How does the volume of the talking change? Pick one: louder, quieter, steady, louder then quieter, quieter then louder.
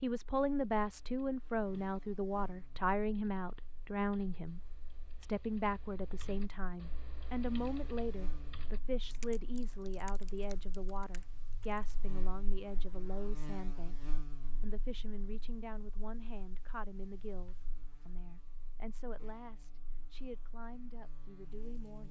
quieter.